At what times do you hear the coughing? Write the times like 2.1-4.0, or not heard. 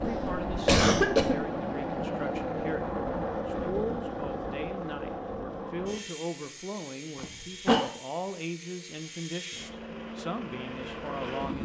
0.1-1.4, 7.2-7.9.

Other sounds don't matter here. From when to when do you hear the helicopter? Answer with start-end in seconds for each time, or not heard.
0.0-11.5.